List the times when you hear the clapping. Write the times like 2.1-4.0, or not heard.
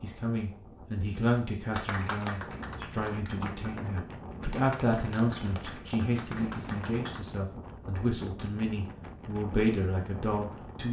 1.7-7.2.